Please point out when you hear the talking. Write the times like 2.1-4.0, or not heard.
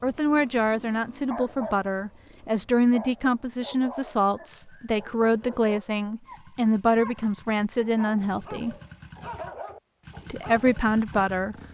0.0-8.8, 10.2-11.6.